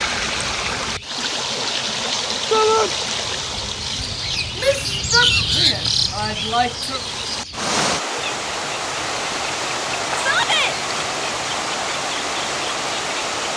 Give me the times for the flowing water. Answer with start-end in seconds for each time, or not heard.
0.0-13.5.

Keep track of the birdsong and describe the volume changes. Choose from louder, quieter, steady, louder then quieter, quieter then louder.
louder then quieter.